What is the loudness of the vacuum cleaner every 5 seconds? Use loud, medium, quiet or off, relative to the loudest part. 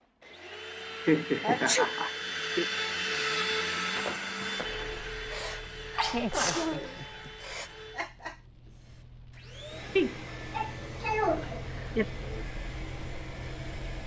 loud, medium, medium.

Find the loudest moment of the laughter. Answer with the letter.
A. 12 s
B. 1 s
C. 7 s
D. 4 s
B.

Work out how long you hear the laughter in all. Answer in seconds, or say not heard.
4 s.